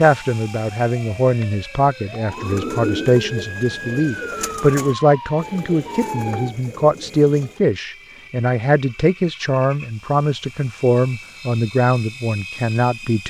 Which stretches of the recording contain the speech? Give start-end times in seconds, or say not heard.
0.0-13.2.